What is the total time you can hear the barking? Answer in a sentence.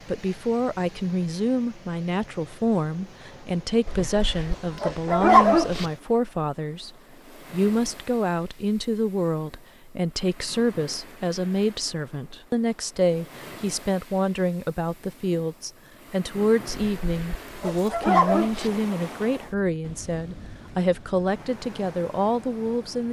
You can hear the barking for 4 seconds altogether.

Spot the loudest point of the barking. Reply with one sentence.
The volume of the barking peaks at 5 seconds.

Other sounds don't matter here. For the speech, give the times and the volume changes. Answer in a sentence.
The speech can be heard from 0.1 to 6.9 s, at a steady volume; and from 7.5 to 23.0 s, at a steady volume.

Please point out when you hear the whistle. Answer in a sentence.
You can't hear the whistle here.